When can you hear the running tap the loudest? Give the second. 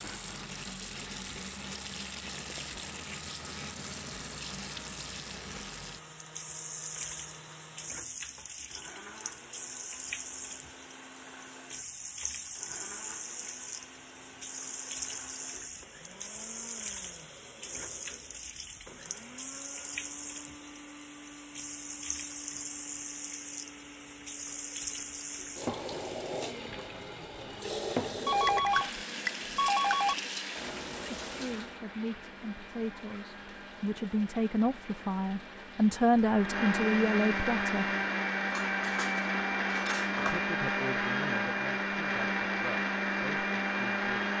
28 s.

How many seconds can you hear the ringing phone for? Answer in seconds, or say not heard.
2 s.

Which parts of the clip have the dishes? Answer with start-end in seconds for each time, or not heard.
38.5-40.4.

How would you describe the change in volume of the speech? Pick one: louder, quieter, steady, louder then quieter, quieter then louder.
louder then quieter.